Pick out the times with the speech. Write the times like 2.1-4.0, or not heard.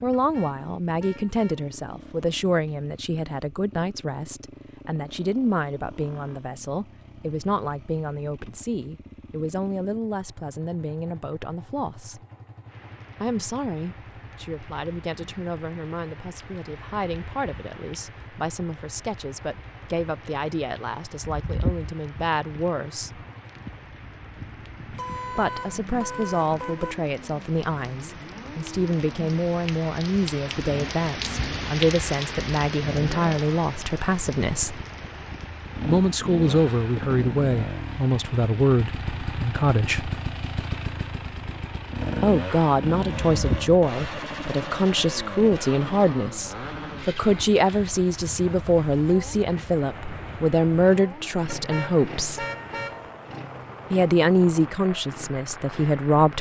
0.0-12.2, 13.2-23.2, 25.3-34.8, 35.9-40.1, 42.2-52.5, 53.9-56.3.